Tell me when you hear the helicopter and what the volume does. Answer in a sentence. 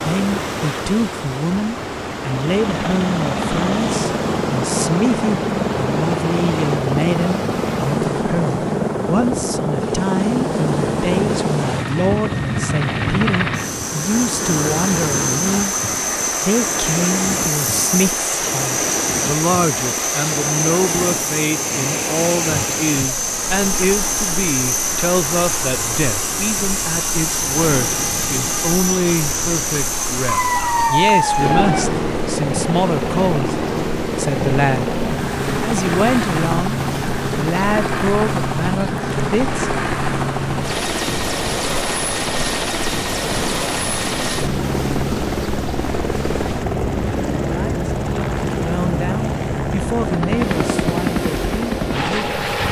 The helicopter can be heard from 2.5 to 52.6 s, at a steady volume.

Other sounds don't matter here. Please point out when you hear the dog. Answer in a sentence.
You can hear the dog from 30.2 to 31.9 s.